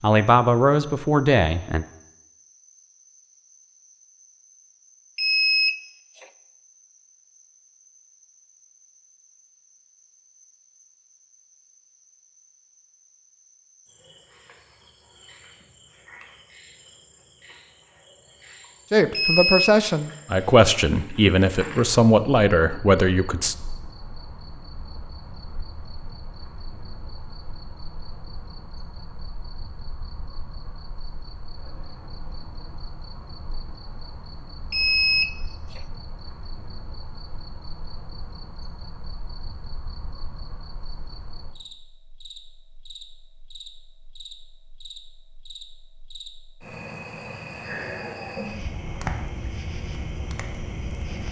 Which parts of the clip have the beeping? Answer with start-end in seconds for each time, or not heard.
5.2-6.2, 19.1-19.8, 34.7-35.8.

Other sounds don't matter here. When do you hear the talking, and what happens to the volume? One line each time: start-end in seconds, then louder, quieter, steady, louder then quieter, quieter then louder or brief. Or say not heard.
0.0-1.9 brief
18.9-23.6 steady.